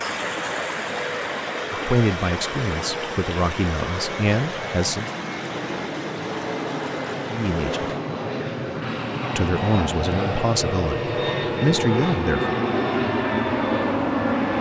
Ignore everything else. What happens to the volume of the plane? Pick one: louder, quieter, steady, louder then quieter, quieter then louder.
louder.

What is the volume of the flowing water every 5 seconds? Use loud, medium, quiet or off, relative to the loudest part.
loud, medium, medium.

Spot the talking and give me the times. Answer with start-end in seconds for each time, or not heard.
1.7-5.1, 7.3-7.9, 9.3-12.6.